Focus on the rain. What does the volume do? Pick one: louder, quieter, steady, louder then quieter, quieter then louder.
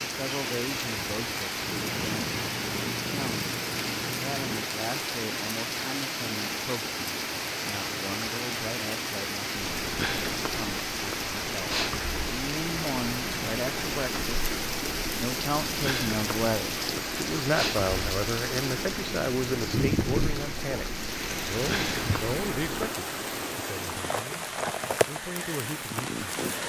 steady.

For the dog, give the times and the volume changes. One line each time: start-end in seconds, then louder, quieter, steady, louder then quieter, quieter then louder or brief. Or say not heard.
not heard.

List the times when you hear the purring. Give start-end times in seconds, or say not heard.
1.6-4.7, 9.6-22.9.